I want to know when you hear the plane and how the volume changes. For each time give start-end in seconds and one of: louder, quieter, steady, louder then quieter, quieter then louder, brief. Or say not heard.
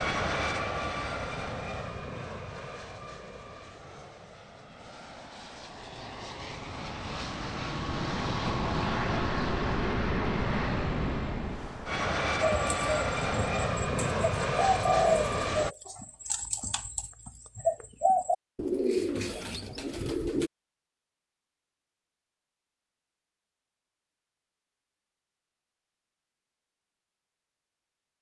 0.0-15.8 quieter then louder.